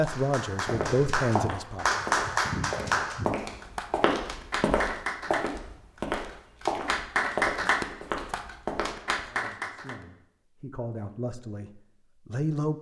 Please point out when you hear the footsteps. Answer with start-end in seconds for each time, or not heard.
0.0-9.3.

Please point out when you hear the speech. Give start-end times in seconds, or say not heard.
0.0-2.0, 9.2-12.7.